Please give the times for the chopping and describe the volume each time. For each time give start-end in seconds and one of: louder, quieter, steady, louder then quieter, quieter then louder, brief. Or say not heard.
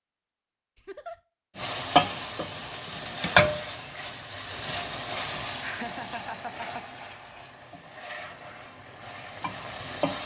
not heard.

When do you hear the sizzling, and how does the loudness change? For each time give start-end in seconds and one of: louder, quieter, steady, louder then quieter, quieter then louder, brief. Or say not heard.
1.6-10.2 quieter.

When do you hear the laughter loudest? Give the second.
6 s.